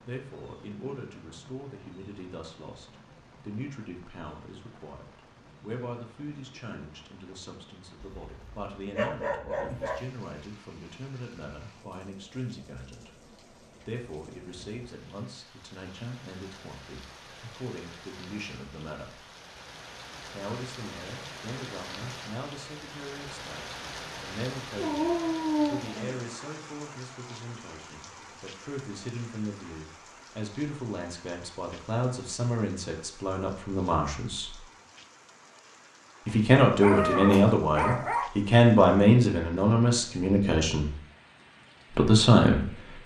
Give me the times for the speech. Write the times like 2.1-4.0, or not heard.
0.1-19.2, 20.2-34.5, 36.2-40.9, 41.9-43.0.